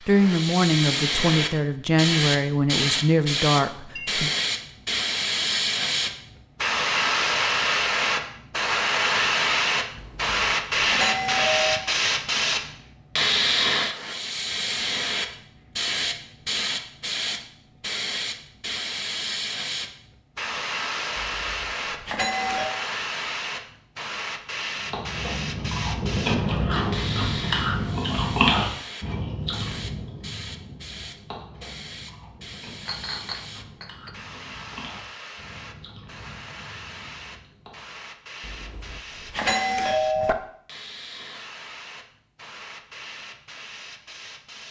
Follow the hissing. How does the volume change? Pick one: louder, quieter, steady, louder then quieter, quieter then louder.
quieter.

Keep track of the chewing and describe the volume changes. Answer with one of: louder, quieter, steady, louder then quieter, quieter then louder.
quieter.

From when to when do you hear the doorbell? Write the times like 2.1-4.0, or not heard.
9.9-11.8, 21.1-22.7, 38.4-40.4.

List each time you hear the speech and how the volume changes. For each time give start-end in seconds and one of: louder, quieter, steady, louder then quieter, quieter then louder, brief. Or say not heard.
0.1-4.3 steady.